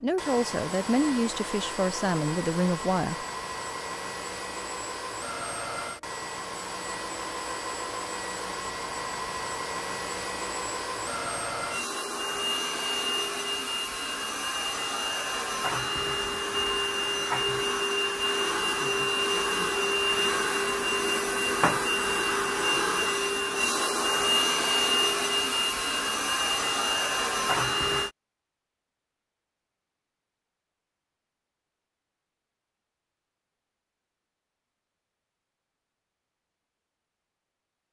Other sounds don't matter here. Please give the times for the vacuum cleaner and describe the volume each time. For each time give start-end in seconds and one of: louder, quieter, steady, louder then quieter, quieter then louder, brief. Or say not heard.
0.0-28.1 louder.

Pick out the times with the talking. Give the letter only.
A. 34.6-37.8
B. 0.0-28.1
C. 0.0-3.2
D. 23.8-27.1
C.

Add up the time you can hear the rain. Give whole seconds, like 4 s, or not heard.
not heard.